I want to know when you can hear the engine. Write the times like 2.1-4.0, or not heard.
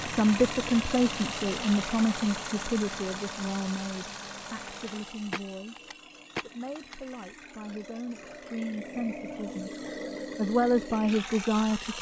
0.0-11.9.